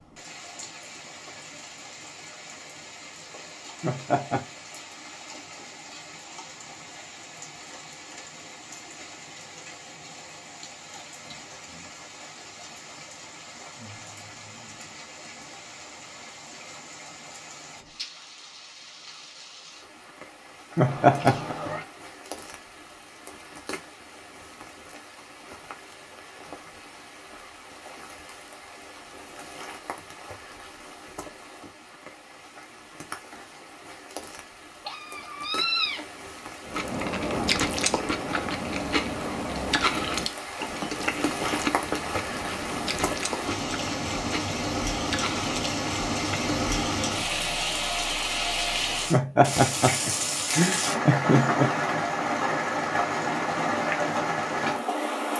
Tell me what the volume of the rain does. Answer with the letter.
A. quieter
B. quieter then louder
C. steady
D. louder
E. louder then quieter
D.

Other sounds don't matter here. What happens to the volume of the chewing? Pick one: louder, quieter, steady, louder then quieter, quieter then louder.
quieter.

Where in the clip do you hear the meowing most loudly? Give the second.
36 s.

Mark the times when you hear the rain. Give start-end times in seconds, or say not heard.
0.0-55.3.